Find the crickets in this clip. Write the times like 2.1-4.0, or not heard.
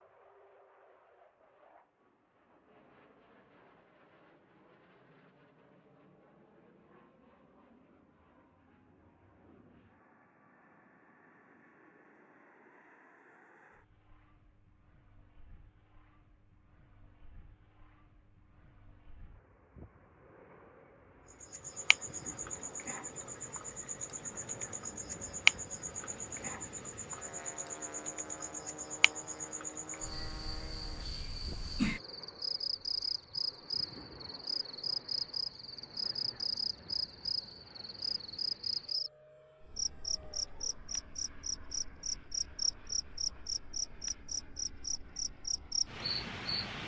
21.3-46.8.